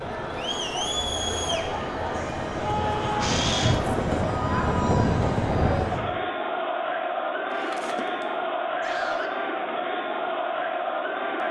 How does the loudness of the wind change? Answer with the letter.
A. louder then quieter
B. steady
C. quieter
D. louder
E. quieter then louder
D.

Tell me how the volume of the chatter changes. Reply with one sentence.
The volume of the chatter stays about the same.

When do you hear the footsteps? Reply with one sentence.
The footsteps can't be heard in this clip.